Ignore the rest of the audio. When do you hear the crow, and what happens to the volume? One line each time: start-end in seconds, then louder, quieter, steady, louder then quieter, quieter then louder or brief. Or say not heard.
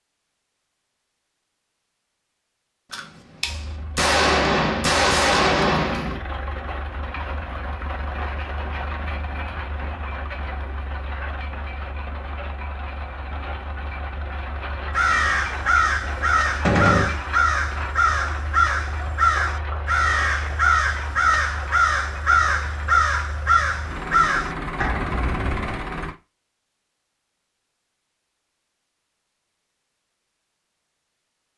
14.9-25.8 steady.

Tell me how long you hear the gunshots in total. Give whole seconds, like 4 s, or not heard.
4 s.